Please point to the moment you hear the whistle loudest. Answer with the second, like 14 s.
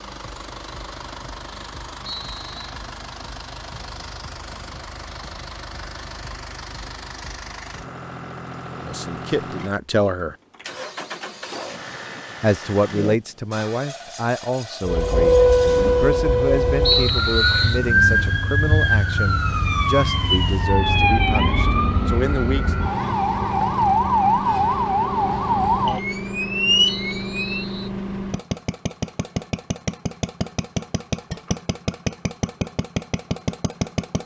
17 s.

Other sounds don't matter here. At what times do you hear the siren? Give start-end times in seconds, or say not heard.
14.8-27.6.